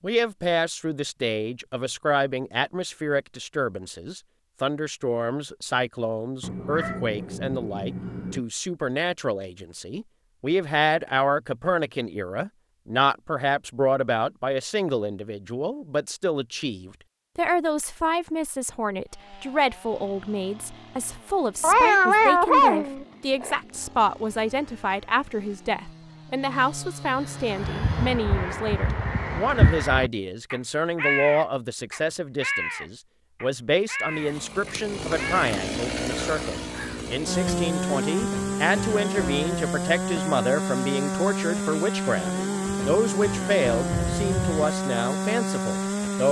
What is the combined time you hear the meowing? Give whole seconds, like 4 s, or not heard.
5 s.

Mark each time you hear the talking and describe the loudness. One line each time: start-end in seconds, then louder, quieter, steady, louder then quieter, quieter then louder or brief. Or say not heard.
0.0-46.2 steady.